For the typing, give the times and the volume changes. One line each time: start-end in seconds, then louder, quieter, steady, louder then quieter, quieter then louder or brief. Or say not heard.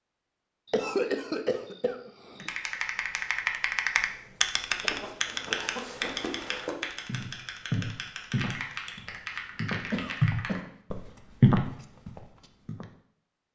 2.4-10.6 quieter.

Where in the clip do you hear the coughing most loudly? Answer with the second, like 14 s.
1 s.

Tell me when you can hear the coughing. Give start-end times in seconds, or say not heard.
0.7-2.5, 4.8-6.7, 9.9-10.7.